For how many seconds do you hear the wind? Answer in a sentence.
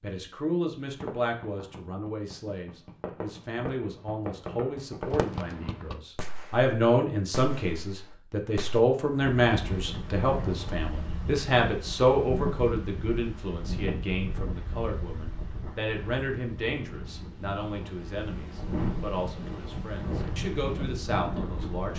You can hear the wind for 13 seconds altogether.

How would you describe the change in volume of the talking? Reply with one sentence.
The loudness of the talking goes up, then down.